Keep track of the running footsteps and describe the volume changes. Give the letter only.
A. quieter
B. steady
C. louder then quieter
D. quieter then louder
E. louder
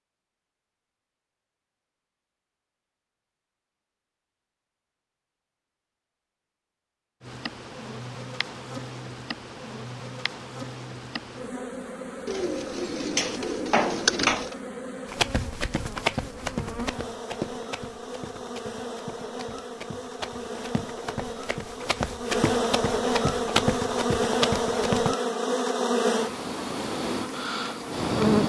D.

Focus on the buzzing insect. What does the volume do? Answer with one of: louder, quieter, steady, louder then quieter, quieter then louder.
louder.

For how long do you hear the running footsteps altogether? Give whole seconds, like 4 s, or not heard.
10 s.